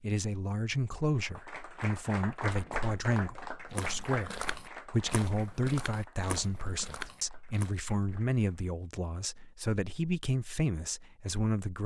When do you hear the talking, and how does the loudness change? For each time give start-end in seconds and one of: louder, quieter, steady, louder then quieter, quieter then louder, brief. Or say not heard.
0.0-11.8 steady.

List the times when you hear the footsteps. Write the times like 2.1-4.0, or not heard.
3.7-7.8.